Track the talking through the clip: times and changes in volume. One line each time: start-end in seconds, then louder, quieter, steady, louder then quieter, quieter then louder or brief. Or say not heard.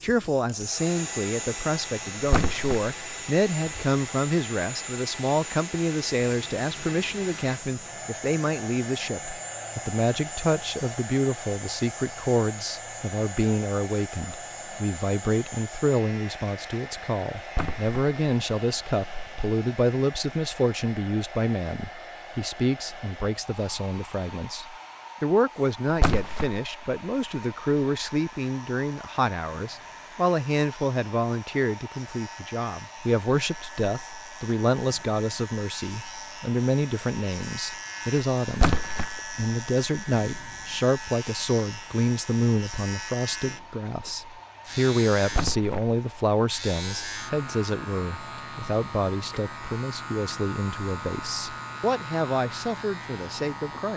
0.0-53.9 steady.